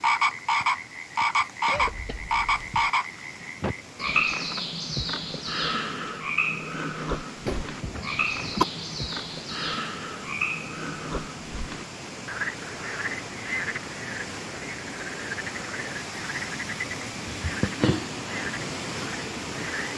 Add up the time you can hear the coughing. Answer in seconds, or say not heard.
3 s.